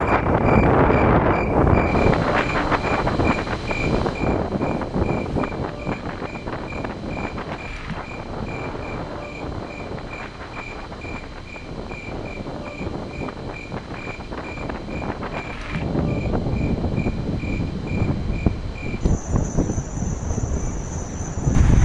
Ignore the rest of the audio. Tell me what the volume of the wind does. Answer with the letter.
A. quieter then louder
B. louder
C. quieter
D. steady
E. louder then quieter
A.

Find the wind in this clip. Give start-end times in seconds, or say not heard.
0.0-21.8.